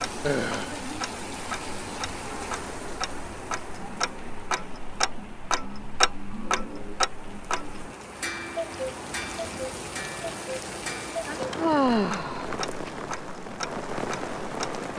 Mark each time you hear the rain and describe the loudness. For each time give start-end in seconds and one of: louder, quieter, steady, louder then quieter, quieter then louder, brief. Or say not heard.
0.0-14.9 quieter then louder.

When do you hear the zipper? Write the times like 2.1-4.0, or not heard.
not heard.